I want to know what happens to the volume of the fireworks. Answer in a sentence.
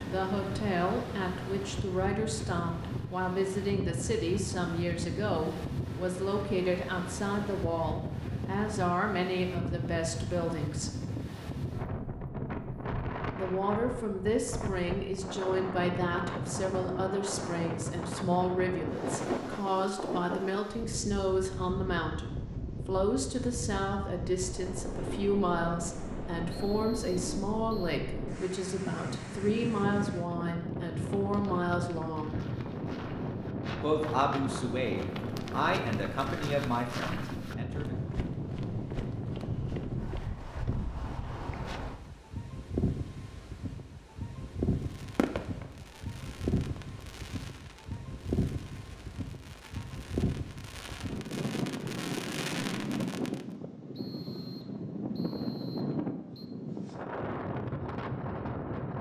The loudness of the fireworks goes down, then up.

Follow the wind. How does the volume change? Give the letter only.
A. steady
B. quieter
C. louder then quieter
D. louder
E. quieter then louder
A.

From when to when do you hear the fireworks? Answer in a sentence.
The fireworks can be heard from 44.8 to 53.5 s.